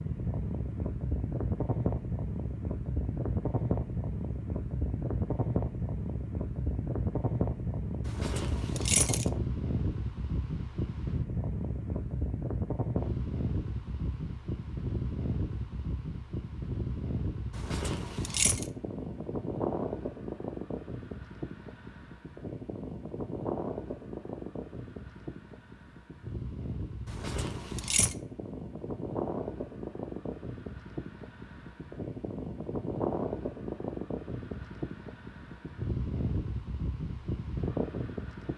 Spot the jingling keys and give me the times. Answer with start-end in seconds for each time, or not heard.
8.1-9.2, 17.6-18.6, 27.1-28.1.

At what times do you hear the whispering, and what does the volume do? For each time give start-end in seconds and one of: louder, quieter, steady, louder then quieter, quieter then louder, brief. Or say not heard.
not heard.